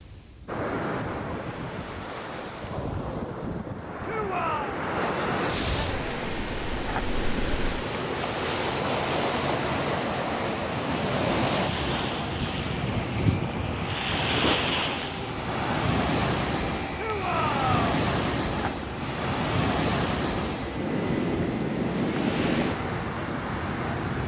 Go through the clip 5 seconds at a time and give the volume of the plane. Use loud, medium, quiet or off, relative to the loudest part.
off, loud, loud, loud, loud.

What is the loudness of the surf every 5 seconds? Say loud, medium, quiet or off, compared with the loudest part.
medium, loud, loud, loud, loud.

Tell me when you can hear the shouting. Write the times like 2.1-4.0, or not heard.
4.0-4.8, 16.9-17.8.